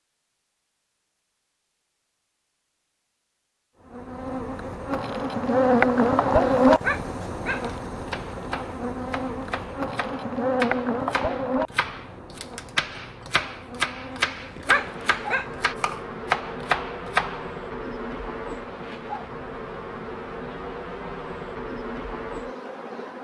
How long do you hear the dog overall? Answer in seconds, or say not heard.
2 s.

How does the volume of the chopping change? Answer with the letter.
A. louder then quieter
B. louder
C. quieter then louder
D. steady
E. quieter
B.